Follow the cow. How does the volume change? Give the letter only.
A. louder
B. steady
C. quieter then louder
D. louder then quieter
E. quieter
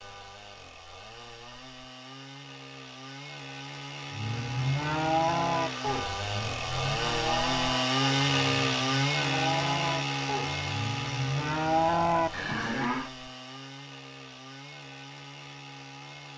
C.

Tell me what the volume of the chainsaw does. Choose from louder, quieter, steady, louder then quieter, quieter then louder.
louder then quieter.